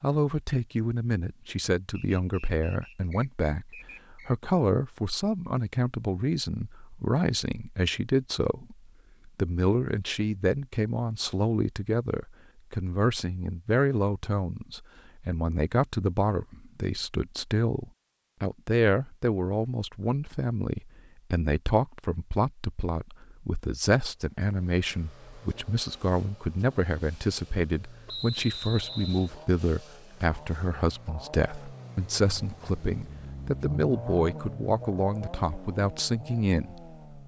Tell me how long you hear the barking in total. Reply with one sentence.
You can't hear the barking here.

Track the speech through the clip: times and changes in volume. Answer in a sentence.
The speech can be heard from 0.0 to 37.0 s, at a steady volume.